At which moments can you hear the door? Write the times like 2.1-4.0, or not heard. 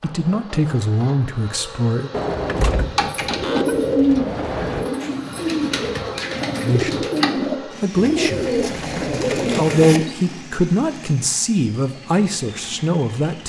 2.1-4.9.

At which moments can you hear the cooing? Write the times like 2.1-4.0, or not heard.
2.8-10.2.